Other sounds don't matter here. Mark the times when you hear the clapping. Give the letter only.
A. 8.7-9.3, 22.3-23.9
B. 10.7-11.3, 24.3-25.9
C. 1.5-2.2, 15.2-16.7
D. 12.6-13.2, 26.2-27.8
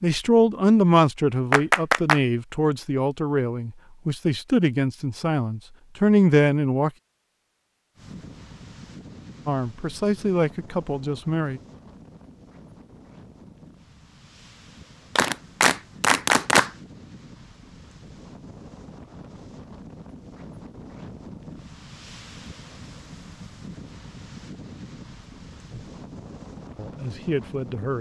C.